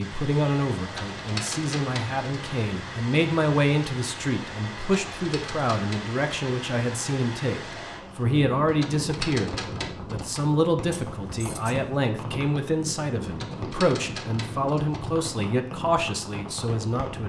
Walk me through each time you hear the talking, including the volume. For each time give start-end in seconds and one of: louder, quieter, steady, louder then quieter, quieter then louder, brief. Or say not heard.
0.0-17.2 steady.